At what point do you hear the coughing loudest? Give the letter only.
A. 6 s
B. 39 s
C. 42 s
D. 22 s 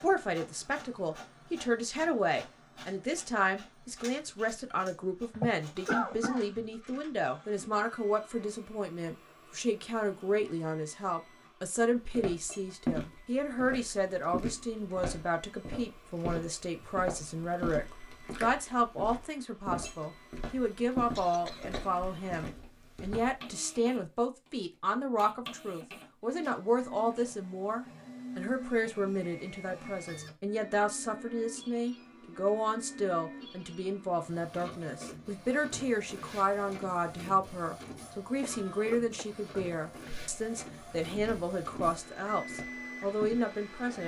A.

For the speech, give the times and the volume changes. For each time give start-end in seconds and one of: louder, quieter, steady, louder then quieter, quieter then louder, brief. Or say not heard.
0.0-44.0 steady.